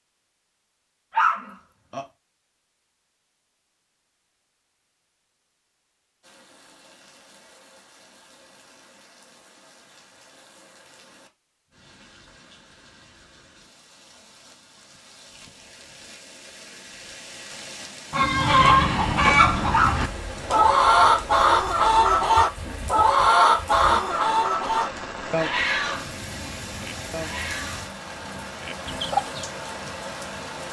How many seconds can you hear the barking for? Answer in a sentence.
You can hear the barking for 2 seconds altogether.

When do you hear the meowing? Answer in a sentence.
The meowing can't be heard in this clip.